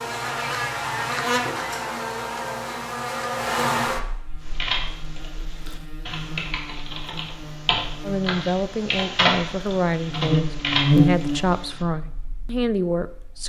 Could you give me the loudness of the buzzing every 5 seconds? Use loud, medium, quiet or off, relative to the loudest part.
loud, quiet, loud.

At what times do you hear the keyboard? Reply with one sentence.
You can hear the keyboard from 4.4 to 11.8 s.